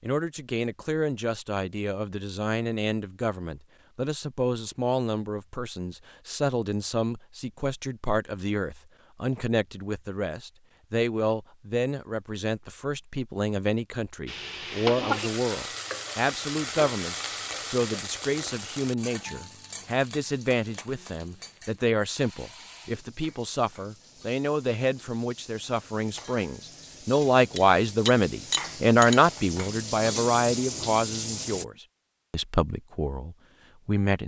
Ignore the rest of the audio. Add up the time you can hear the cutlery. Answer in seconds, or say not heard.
2 s.